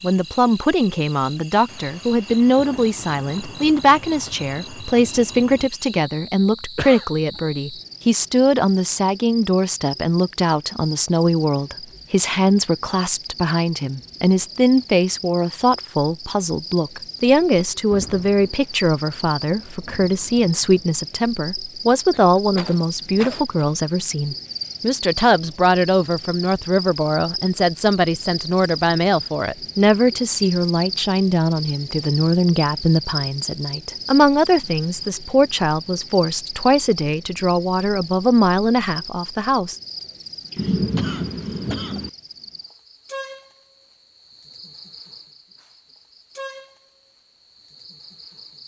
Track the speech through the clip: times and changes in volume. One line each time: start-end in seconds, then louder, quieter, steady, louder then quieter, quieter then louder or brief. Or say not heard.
0.0-39.8 steady.